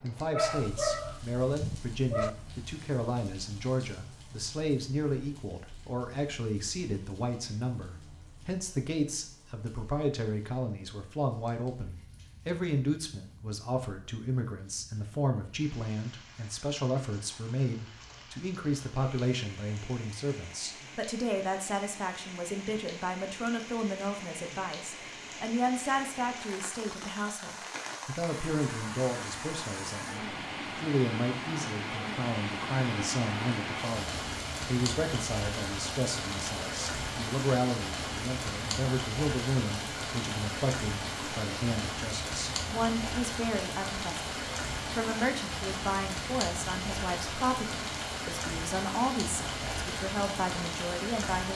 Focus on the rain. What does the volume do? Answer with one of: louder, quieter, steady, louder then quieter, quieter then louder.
louder.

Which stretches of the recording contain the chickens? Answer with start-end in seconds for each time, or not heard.
not heard.